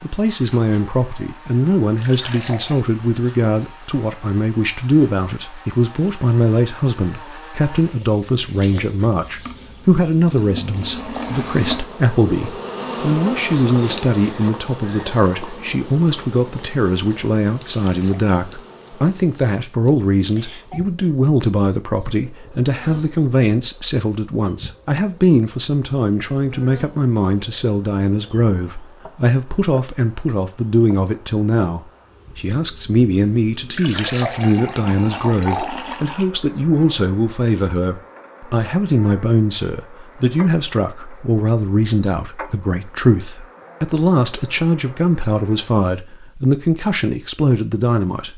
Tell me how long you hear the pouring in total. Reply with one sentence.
The pouring can be heard for 4 seconds in total.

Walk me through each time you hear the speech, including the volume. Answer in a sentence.
You can hear the speech from 0.0 to 48.3 s, at a steady volume.